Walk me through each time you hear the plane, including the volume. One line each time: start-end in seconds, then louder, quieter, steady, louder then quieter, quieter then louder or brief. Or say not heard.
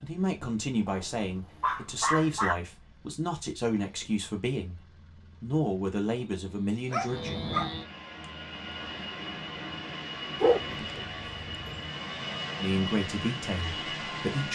0.0-14.5 louder.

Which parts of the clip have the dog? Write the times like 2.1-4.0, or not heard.
0.8-2.5, 6.9-7.8, 10.4-11.9.